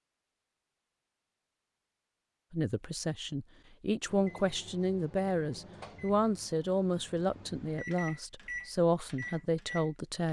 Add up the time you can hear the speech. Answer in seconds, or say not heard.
8 s.